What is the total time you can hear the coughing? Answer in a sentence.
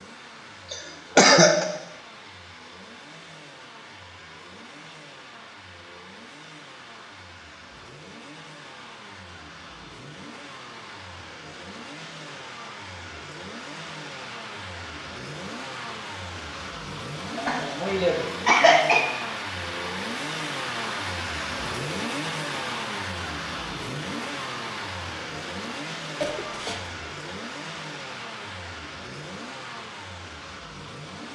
You can hear the coughing for 3 seconds altogether.